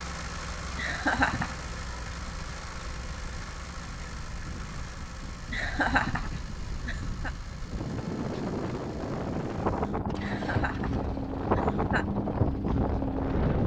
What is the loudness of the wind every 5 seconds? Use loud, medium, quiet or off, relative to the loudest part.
quiet, medium, loud.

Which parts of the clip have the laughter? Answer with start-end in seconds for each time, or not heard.
0.8-1.6, 5.5-7.3, 10.2-12.1.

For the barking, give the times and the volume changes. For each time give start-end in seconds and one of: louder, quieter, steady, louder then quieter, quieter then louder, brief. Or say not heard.
not heard.